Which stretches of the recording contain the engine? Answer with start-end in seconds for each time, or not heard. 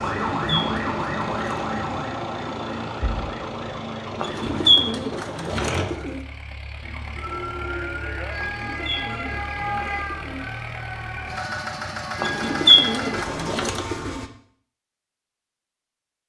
0.0-14.3.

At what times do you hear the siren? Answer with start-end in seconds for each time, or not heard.
0.0-5.2, 6.8-13.2.